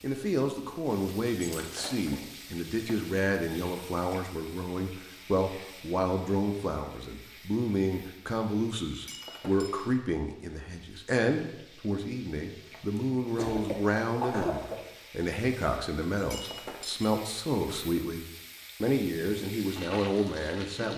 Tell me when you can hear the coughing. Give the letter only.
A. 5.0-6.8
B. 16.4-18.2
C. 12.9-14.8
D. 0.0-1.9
C.